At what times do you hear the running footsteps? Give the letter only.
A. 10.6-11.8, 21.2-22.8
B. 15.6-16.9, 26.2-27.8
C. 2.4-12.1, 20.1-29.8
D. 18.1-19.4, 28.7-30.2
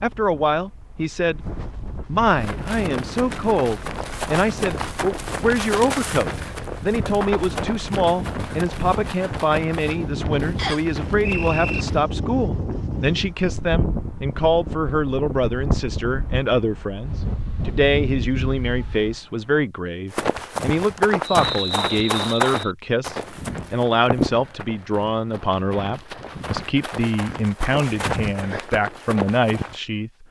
C.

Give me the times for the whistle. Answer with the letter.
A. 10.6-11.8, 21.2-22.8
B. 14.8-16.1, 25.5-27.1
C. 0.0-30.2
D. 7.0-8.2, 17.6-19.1
A.